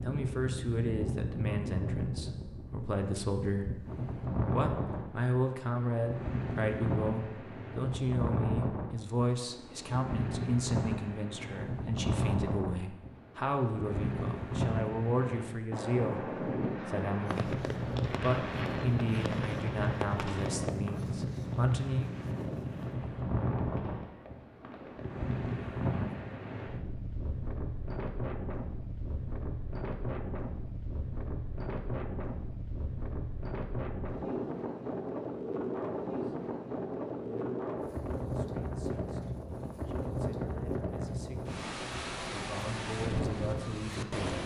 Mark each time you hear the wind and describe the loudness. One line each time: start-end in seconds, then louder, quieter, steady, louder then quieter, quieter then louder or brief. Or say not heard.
0.0-44.4 steady.